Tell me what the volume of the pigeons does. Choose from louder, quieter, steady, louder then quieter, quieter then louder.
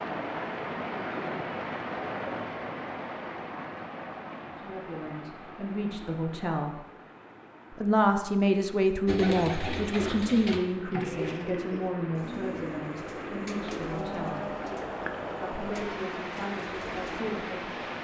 quieter.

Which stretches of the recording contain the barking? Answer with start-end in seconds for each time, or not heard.
not heard.